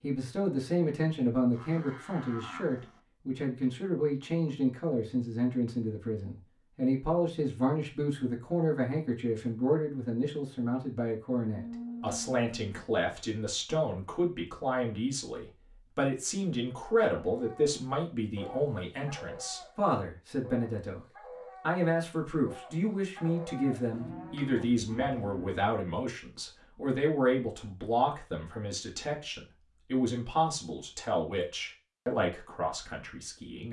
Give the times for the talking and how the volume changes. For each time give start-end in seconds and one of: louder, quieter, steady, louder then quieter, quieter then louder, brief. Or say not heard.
0.0-33.6 steady.